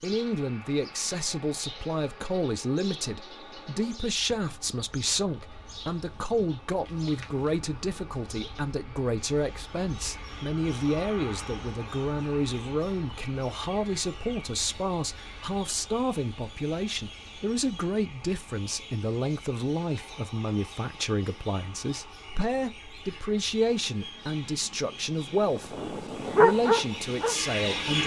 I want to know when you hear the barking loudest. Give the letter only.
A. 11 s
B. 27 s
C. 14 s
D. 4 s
B.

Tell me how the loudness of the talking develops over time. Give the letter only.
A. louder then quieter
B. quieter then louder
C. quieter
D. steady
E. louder
D.